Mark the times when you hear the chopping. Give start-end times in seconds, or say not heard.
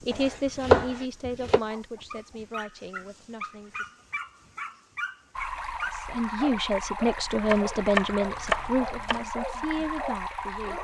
0.1-1.6, 7.5-9.2.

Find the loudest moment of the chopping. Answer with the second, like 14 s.
1 s.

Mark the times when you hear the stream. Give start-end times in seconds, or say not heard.
5.3-10.7.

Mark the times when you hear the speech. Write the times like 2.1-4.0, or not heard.
0.1-4.0, 5.9-10.7.